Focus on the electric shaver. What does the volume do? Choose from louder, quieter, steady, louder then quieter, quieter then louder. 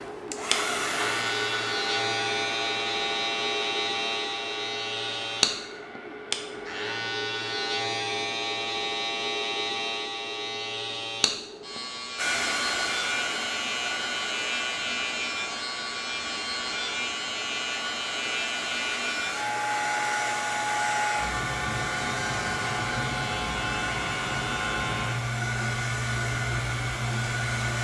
steady.